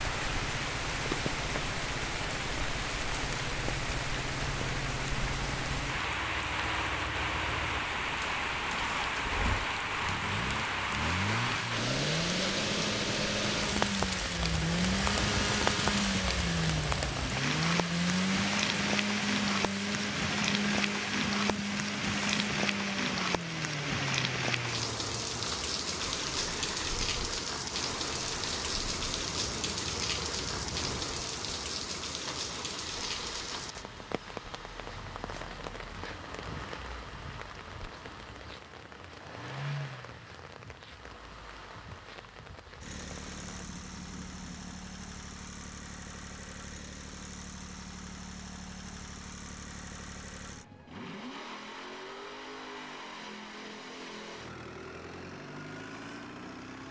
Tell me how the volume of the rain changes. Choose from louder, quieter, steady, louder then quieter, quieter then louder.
quieter.